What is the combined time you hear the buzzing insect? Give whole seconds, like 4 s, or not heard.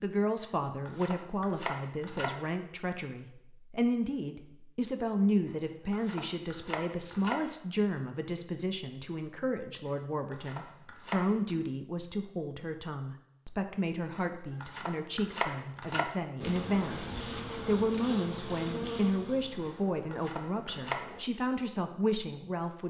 5 s.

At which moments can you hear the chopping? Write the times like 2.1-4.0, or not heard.
0.4-2.4, 5.5-7.4, 9.8-11.6, 14.2-16.1, 19.6-21.1.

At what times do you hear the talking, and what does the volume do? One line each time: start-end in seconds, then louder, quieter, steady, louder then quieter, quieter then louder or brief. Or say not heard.
0.0-22.8 steady.